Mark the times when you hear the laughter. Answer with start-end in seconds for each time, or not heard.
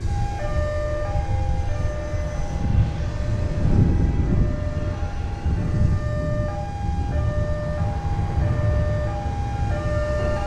not heard.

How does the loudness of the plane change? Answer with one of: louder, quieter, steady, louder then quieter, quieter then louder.
louder then quieter.